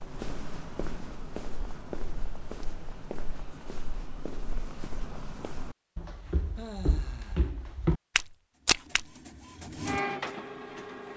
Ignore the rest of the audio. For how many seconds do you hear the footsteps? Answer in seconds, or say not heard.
9 s.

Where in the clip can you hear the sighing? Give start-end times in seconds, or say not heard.
6.5-7.5.